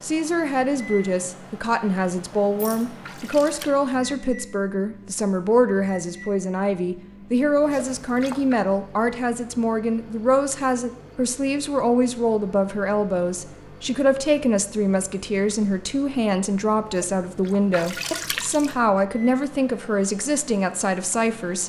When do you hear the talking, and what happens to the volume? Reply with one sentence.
You can hear the talking from 0.0 to 21.6 s, at a steady volume.